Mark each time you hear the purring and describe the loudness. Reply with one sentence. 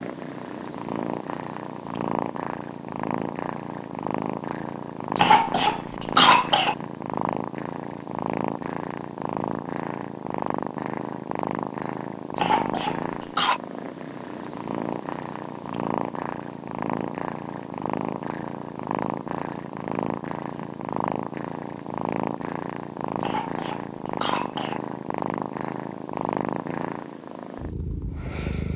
The purring can be heard from 0.0 to 28.7 s, at a steady volume.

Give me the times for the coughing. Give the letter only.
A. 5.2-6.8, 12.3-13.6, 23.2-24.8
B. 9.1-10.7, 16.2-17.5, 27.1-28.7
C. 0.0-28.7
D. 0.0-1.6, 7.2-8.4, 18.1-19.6
A.